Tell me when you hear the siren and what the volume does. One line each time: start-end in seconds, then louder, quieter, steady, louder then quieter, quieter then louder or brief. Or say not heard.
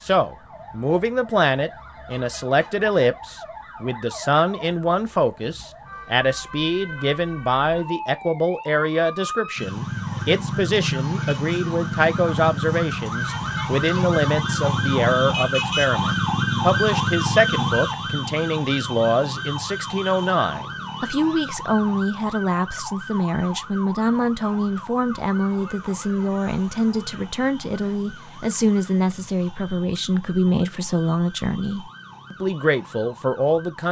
0.0-33.8 louder then quieter.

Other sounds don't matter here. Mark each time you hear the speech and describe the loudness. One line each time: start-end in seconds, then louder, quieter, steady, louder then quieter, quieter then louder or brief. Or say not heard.
0.0-33.8 steady.